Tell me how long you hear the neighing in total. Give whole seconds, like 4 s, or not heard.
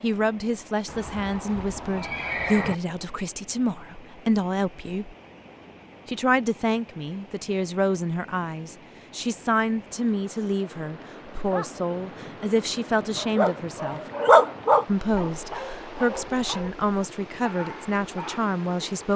2 s.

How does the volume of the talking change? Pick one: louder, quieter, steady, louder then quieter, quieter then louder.
steady.